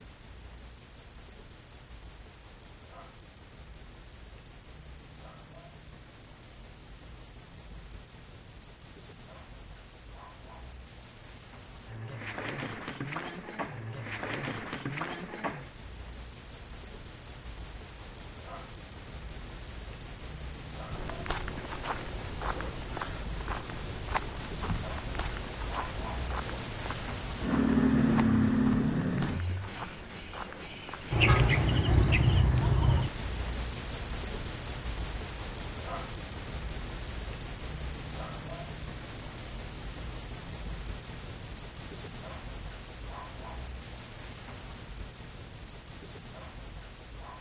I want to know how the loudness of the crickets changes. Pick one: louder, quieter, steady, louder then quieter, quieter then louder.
louder then quieter.